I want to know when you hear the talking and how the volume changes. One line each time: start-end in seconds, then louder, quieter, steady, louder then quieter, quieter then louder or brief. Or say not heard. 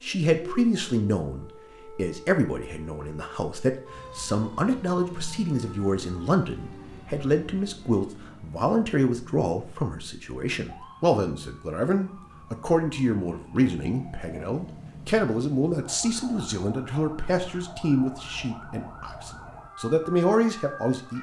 0.0-21.1 steady.